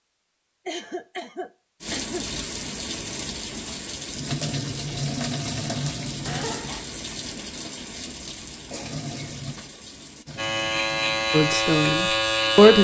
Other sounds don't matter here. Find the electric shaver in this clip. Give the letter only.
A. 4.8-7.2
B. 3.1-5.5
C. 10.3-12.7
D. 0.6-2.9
C.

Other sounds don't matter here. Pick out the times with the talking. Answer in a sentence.
The talking can be heard from 11.3 to 12.7 s.